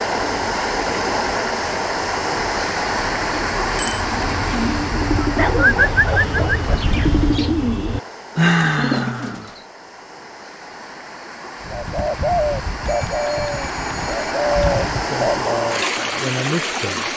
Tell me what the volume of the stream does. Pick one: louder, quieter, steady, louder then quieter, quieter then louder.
quieter then louder.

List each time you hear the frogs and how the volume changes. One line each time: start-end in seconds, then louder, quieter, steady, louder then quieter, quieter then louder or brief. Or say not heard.
not heard.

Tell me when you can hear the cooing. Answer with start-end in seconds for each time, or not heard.
0.0-9.6, 11.6-15.7.